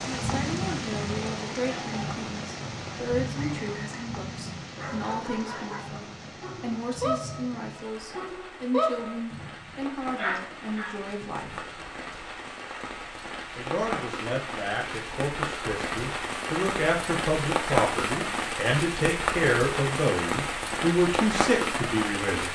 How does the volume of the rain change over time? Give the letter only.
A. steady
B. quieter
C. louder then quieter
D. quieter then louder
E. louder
D.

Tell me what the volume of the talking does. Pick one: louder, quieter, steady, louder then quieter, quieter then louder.
louder.